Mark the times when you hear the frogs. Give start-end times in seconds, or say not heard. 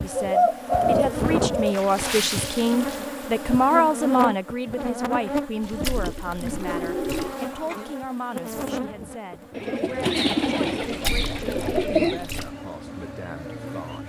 not heard.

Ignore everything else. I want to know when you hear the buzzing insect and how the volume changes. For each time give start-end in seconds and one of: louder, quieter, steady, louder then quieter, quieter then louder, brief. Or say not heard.
0.0-14.0 quieter.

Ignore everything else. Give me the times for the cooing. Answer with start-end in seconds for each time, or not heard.
0.1-1.8, 6.0-7.8, 9.6-12.2.